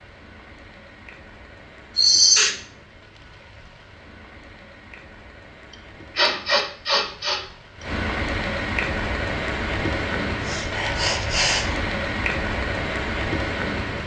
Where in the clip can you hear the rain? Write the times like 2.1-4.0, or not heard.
0.0-14.0.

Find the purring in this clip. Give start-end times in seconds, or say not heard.
not heard.